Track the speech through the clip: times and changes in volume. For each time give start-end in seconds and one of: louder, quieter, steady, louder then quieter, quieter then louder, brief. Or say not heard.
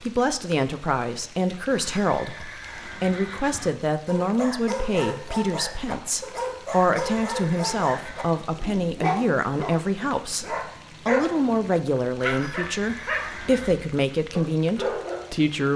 0.0-15.7 steady.